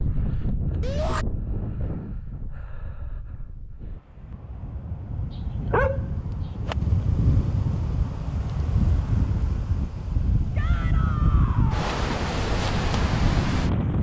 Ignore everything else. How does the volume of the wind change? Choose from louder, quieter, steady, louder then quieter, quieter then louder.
quieter then louder.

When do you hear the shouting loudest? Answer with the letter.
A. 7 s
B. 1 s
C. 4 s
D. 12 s
B.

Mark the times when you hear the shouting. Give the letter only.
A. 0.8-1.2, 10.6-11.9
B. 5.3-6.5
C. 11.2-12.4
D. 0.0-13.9
A.